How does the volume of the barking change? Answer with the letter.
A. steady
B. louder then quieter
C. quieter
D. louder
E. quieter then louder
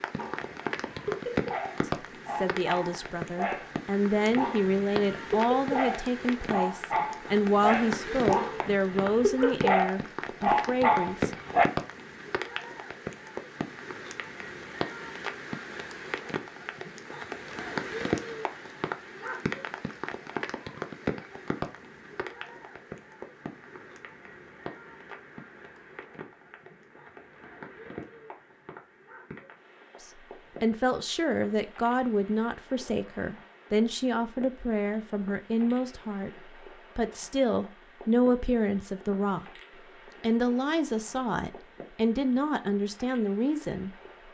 D.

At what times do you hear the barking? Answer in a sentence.
The barking can be heard from 0.1 to 11.7 s.